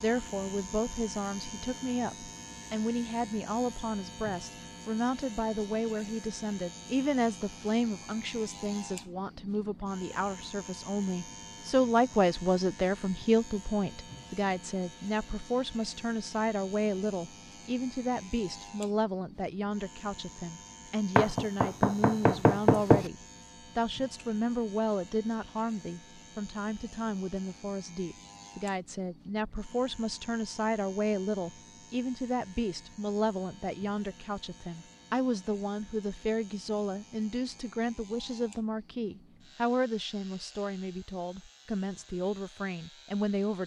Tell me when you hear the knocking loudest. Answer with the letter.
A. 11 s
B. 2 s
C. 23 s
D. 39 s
C.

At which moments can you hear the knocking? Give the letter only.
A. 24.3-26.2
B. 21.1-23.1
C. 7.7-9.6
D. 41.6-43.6
B.